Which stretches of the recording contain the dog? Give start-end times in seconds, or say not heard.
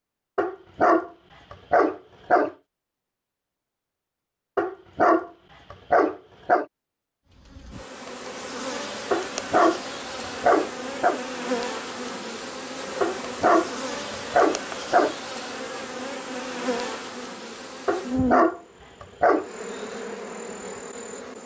0.3-2.5, 4.5-6.7, 9.1-11.2, 13.0-15.2, 17.9-19.5.